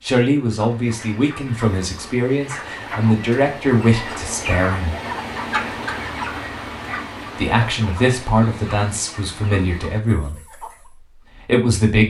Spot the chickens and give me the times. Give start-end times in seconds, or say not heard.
0.3-10.9.